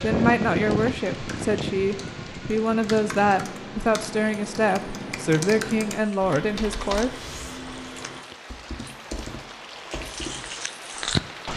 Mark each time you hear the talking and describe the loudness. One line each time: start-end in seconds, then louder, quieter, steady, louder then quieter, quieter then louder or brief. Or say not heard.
0.0-7.2 steady.